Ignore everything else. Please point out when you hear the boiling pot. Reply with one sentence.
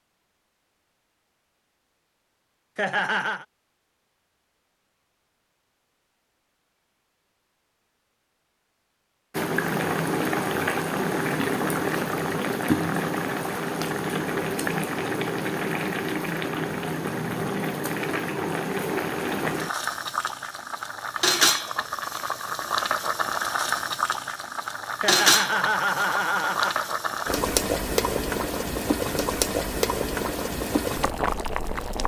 You can hear the boiling pot from 9.3 to 32.0 s.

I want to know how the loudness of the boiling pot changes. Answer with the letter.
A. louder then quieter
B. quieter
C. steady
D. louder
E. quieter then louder
C.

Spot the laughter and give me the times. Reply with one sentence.
You can hear the laughter from 2.8 to 3.5 s and from 25.0 to 26.9 s.